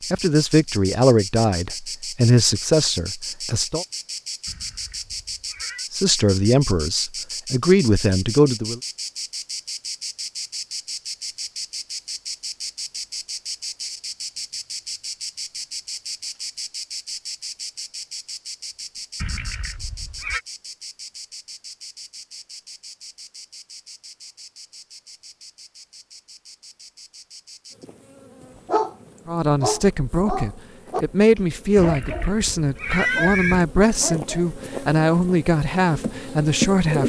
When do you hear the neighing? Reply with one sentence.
You can hear the neighing from 4.5 to 5.8 s, from 19.2 to 20.4 s and from 31.8 to 33.6 s.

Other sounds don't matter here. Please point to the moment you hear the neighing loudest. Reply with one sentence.
The volume of the neighing peaks at 33 seconds.